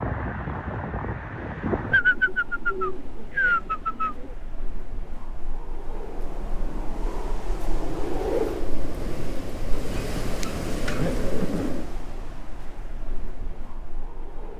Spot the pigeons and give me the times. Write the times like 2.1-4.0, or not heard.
1.9-4.3, 9.7-11.7.